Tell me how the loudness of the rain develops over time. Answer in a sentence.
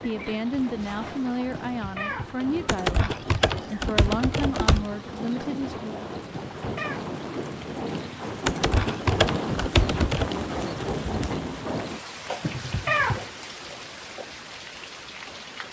The volume of the rain goes up, then down.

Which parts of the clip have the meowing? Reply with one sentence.
You can hear the meowing from 1.6 to 2.5 s, from 6.3 to 7.0 s and from 12.4 to 13.2 s.